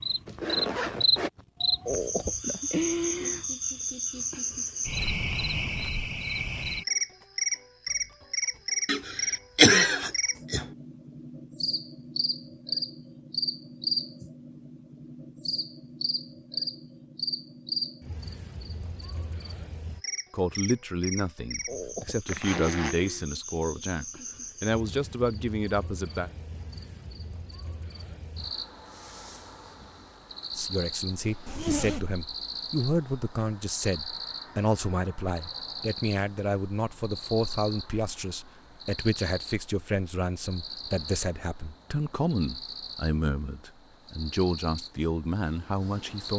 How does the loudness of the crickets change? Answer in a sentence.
The loudness of the crickets goes down.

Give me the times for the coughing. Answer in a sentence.
You can hear the coughing from 8.8 to 10.7 s.